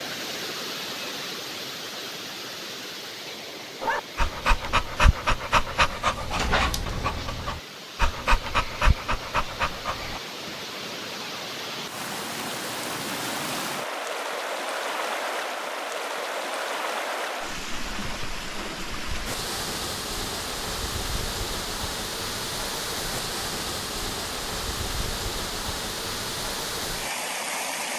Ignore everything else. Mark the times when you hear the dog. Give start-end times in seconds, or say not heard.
3.8-10.2.